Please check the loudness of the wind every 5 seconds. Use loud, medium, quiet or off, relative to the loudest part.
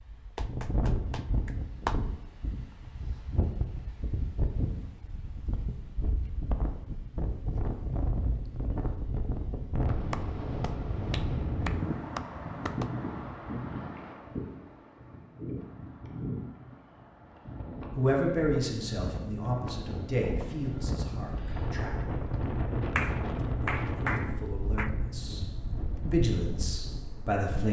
loud, loud, loud, medium, loud, medium.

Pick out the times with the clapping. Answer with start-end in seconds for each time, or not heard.
0.3-2.0, 10.1-12.9, 22.9-24.9.